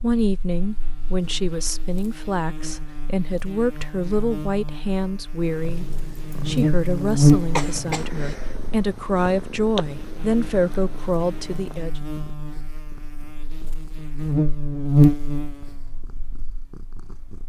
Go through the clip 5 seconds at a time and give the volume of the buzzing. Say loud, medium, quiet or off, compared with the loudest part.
quiet, loud, medium, loud.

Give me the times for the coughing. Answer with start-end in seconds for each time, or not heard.
7.5-8.3.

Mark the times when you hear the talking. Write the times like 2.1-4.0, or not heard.
0.0-12.0.